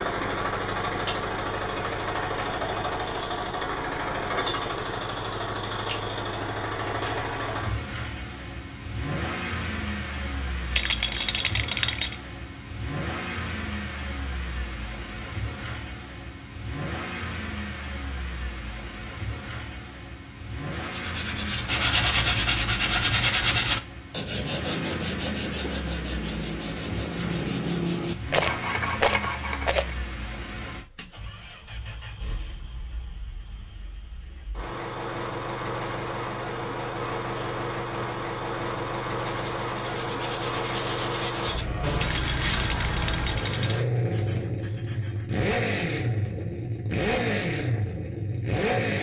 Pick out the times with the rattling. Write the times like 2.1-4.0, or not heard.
10.7-12.2, 28.3-29.9, 42.0-43.8.